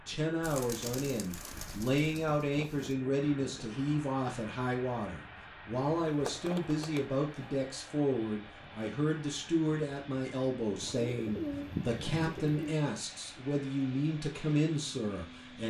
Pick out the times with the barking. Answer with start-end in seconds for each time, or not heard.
not heard.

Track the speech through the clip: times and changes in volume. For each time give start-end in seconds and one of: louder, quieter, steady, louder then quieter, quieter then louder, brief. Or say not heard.
0.1-15.6 steady.